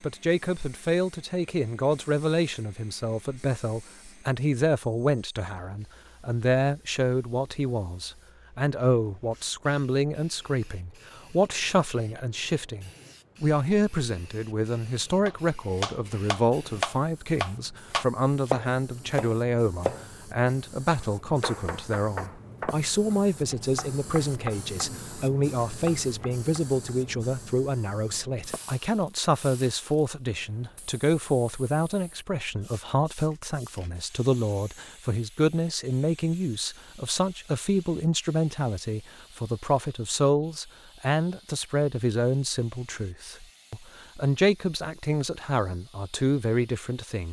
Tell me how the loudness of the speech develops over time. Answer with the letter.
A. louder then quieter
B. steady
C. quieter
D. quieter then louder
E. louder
B.